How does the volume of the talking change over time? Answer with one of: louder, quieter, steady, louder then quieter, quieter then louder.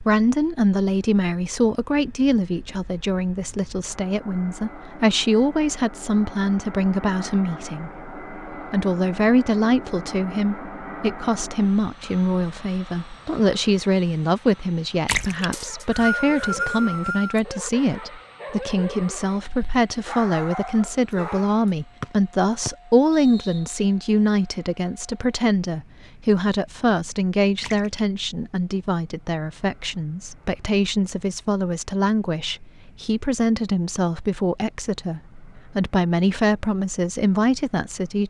steady.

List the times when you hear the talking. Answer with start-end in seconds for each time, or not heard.
0.0-38.2.